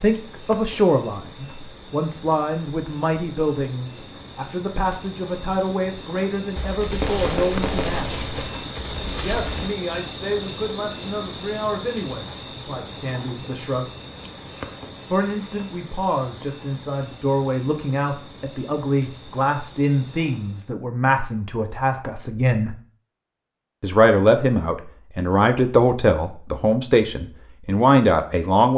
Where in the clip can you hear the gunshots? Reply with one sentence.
You can hear the gunshots from 6.5 to 9.7 s.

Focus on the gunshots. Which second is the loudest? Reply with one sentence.
The loudest moment of the gunshots is at 7 seconds.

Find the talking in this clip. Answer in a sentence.
You can hear the talking from 0.0 to 8.2 s, from 9.1 to 13.8 s, from 15.1 to 22.8 s and from 23.8 to 28.7 s.